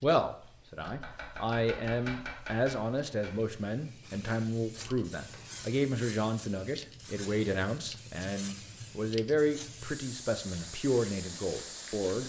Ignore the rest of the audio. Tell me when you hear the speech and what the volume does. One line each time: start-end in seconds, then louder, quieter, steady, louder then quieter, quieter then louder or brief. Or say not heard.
0.0-12.2 steady.